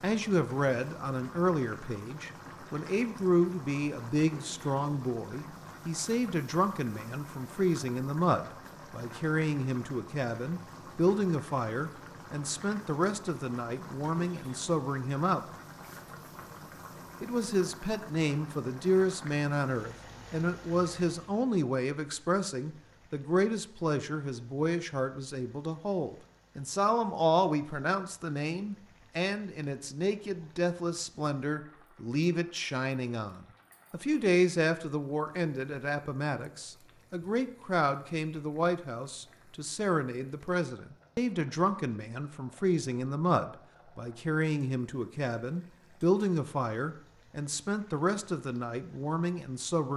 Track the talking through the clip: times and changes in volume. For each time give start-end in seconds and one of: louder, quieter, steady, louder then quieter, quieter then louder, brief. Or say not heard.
0.0-15.4 steady
17.2-49.9 steady.